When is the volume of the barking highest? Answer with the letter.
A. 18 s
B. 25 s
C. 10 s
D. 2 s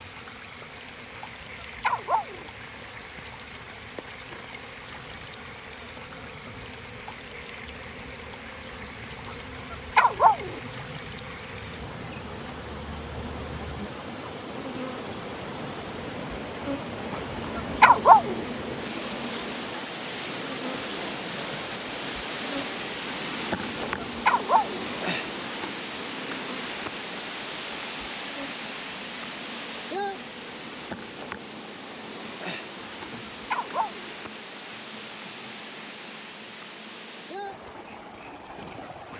A.